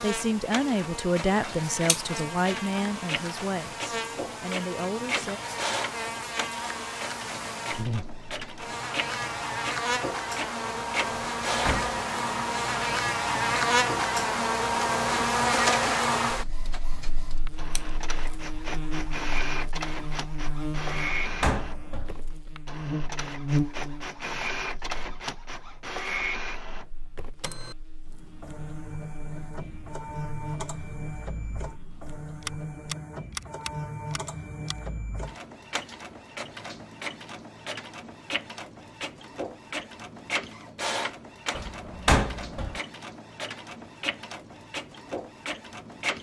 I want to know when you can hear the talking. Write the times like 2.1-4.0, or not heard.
0.0-5.4.